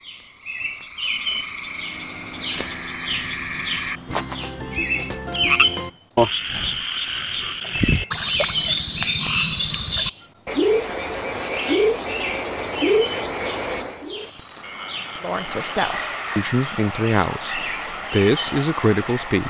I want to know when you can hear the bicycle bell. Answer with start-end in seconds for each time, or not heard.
not heard.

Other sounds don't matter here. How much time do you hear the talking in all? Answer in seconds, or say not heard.
4 s.